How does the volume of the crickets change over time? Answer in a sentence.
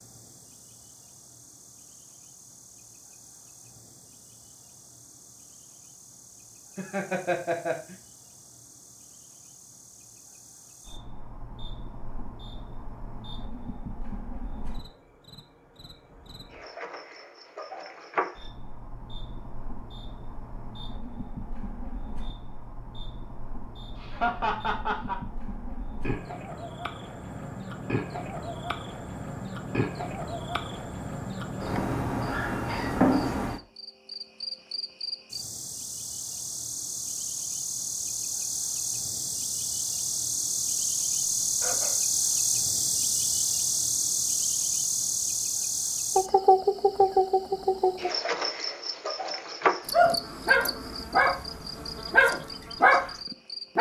The loudness of the crickets goes up.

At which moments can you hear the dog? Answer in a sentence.
The dog can be heard from 49.9 to 51.4 s and from 52.1 to 53.0 s.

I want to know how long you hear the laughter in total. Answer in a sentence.
You can hear the laughter for 3 seconds altogether.